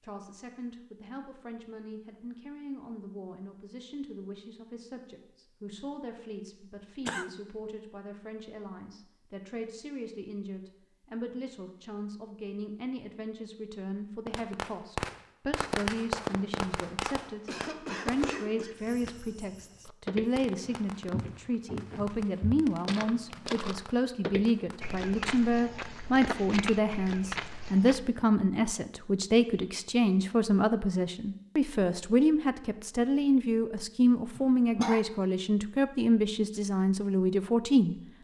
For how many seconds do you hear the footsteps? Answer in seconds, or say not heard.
8 s.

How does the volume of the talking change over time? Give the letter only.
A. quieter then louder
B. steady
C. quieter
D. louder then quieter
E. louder
E.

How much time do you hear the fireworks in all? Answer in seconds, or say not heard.
11 s.